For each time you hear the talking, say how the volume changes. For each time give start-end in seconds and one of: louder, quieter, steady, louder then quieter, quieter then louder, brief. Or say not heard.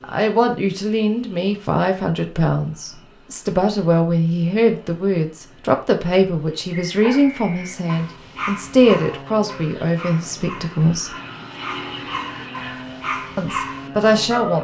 0.0-11.1 steady
13.3-14.5 brief.